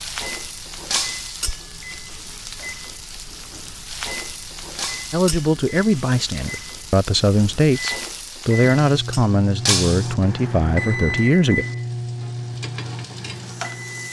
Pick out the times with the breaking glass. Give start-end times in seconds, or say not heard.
0.9-1.4, 4.8-5.2, 9.7-10.2.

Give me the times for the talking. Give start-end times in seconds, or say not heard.
5.1-11.7.